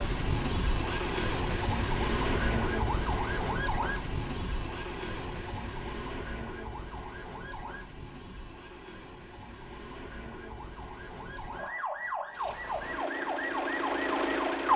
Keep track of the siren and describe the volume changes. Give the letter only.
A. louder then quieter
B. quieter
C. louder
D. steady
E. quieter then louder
E.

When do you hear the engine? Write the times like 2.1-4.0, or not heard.
12.3-14.7.